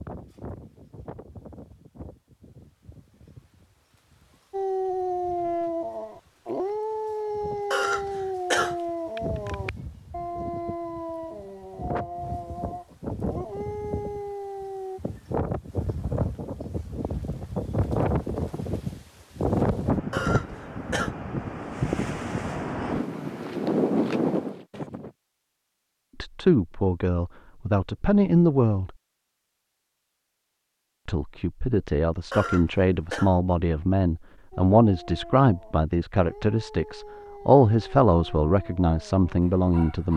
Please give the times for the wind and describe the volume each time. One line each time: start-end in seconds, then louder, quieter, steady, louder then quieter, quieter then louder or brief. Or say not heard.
0.0-25.1 louder.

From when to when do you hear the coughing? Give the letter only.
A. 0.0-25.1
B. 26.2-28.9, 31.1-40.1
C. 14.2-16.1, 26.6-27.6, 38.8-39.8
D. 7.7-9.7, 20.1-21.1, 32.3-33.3
D.